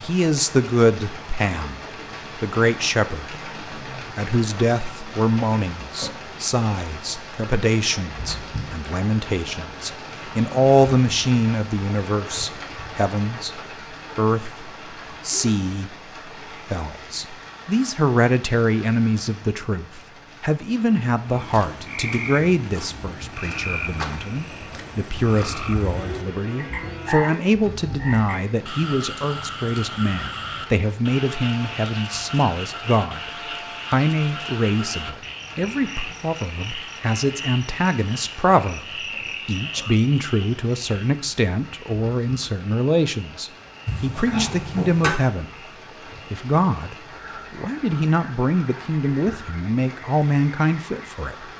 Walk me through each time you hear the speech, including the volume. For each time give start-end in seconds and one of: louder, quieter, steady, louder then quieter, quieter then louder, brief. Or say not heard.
0.0-33.3 steady
33.9-45.5 steady
46.3-51.5 louder.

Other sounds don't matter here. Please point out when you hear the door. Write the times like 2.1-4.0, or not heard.
43.9-45.1.